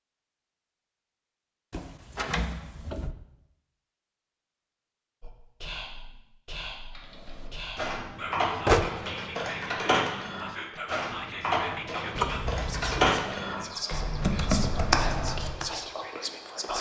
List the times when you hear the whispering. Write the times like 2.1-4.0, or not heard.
5.2-16.7.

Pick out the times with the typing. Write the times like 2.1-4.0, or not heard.
7.0-15.7.